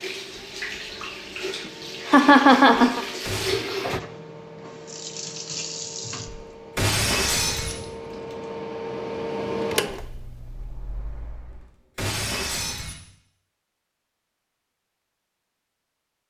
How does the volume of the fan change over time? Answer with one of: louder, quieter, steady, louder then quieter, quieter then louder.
louder.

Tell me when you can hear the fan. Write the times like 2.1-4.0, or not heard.
0.0-11.8.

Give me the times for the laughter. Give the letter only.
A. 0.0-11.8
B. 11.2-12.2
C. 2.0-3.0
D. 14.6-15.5
C.